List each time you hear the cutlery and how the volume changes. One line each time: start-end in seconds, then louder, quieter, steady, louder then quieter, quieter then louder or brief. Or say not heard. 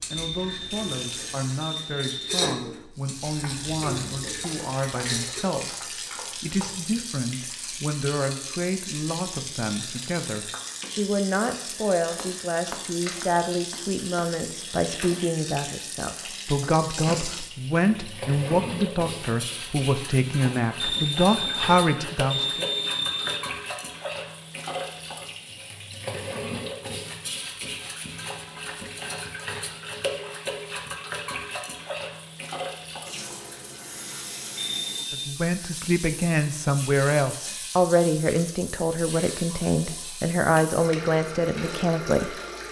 0.0-5.5 louder then quieter.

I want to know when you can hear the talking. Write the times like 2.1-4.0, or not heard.
0.1-22.6, 35.1-42.3.